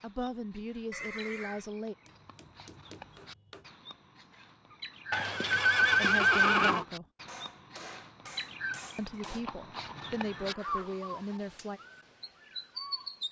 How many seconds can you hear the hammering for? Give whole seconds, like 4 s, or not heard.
4 s.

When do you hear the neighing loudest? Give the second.
6 s.